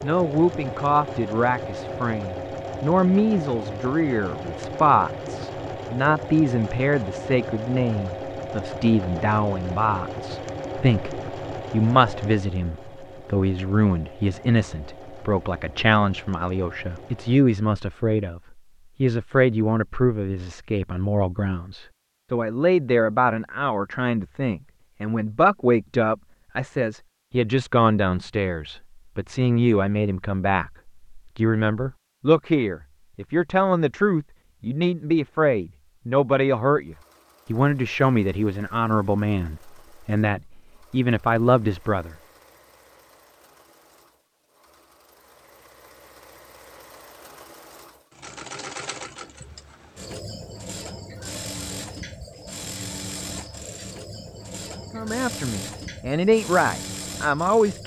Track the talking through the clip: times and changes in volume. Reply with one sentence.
You can hear the talking from 0.0 to 42.1 s, at a steady volume; and briefly from 54.9 to 57.8 s.